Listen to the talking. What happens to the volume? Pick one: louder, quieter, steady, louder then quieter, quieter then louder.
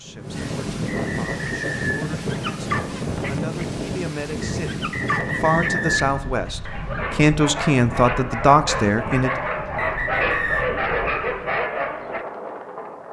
louder.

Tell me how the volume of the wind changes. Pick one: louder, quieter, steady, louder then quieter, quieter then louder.
quieter.